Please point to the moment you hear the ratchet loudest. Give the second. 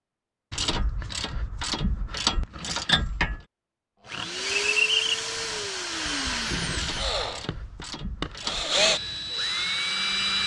3 s.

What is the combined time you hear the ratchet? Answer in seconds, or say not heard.
5 s.